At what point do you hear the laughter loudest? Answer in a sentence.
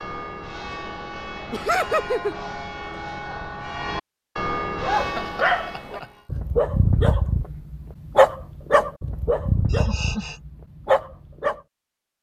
The volume of the laughter peaks at 2 seconds.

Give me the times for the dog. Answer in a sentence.
The dog can be heard from 4.8 to 11.6 s.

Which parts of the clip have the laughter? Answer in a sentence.
You can hear the laughter from 1.5 to 2.4 s, from 5.0 to 6.1 s and from 9.7 to 10.4 s.